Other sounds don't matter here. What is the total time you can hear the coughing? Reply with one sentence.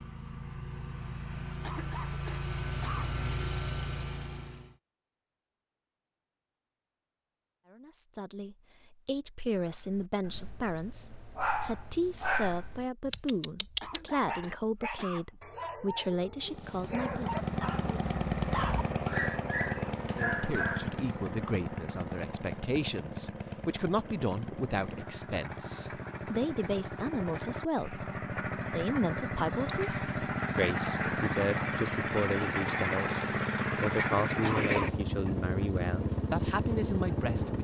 You can hear the coughing for 4 seconds altogether.